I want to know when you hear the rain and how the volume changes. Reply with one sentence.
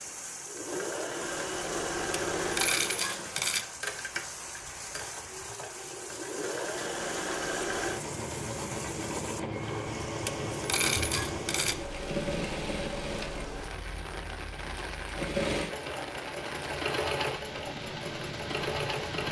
You can hear the rain from 0.0 to 19.2 s, at a steady volume.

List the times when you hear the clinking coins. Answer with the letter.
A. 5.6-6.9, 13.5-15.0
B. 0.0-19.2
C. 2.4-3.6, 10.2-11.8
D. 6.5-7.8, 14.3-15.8
C.